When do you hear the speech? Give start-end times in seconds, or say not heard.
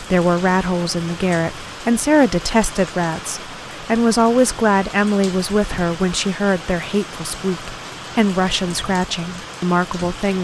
0.0-10.4.